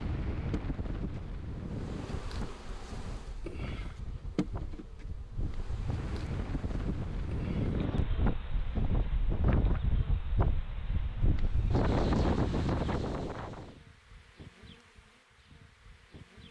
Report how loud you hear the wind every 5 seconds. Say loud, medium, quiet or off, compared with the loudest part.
medium, loud, loud, off.